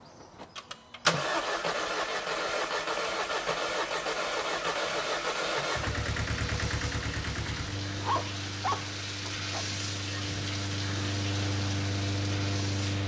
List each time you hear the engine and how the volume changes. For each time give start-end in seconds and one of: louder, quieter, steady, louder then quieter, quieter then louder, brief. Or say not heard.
0.0-13.0 quieter then louder.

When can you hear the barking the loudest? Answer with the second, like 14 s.
8 s.